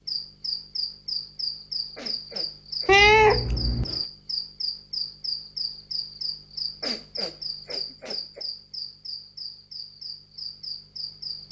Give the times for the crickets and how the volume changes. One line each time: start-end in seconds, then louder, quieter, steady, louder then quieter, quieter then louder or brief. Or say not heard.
0.0-11.4 quieter.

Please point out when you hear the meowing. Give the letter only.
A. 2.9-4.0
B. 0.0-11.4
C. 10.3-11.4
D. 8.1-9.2
A.